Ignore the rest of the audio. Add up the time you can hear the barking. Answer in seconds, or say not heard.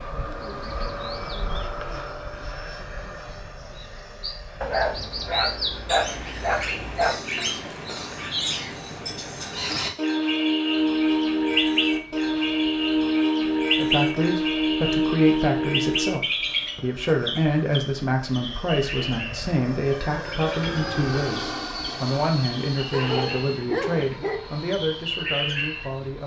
4 s.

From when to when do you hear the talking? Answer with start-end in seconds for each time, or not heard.
13.8-26.2.